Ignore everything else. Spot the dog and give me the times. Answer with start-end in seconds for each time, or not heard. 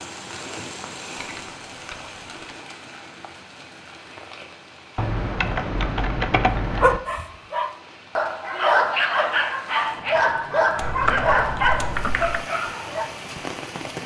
6.8-13.1.